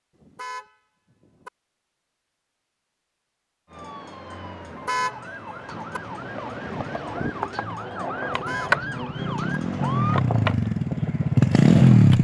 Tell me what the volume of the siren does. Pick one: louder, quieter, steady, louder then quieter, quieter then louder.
louder.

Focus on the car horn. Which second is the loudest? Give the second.
5 s.